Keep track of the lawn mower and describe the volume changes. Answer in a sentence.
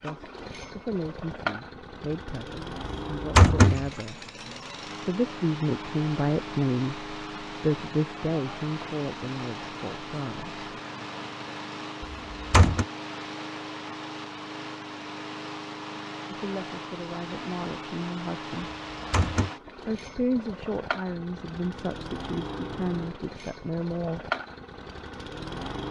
The loudness of the lawn mower stays about the same.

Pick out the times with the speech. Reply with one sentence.
You can hear the speech from 0.0 to 4.3 s, from 5.0 to 10.6 s, from 16.2 to 18.7 s and from 19.9 to 24.3 s.